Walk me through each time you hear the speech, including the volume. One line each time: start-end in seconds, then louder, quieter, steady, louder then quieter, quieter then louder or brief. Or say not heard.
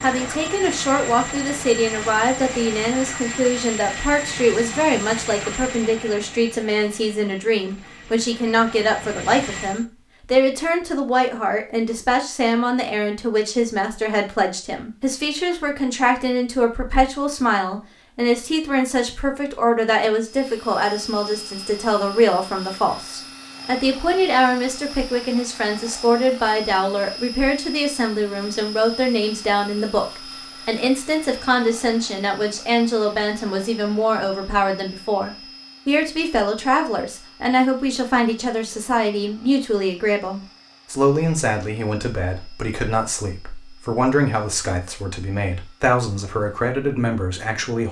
0.0-47.8 steady.